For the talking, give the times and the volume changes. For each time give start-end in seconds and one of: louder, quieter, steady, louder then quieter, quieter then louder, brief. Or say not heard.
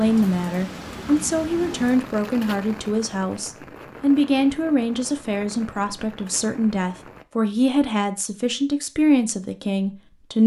0.0-10.4 steady.